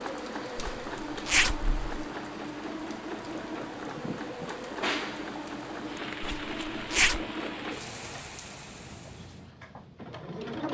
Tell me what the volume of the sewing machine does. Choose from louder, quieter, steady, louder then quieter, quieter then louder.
quieter.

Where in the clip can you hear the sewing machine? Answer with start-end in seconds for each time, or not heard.
0.0-10.6.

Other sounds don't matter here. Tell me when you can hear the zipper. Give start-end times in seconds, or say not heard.
0.6-1.9, 6.2-7.2.